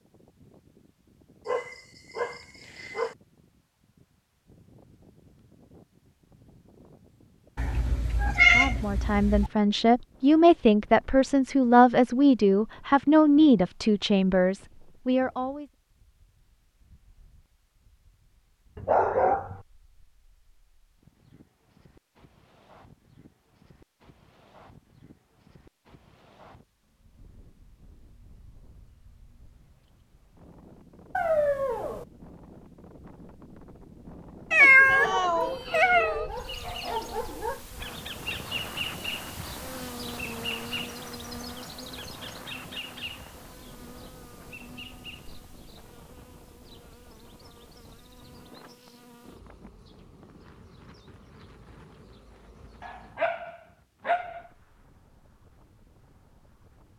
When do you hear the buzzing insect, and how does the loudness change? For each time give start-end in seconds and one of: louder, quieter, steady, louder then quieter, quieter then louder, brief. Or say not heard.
36.3-53.4 quieter.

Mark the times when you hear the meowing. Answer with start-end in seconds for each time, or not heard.
7.5-9.5, 34.5-36.3.